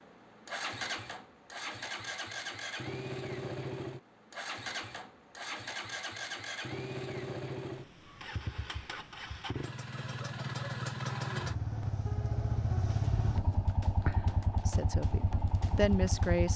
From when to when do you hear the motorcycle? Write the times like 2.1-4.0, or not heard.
0.0-16.5.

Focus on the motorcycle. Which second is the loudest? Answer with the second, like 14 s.
13 s.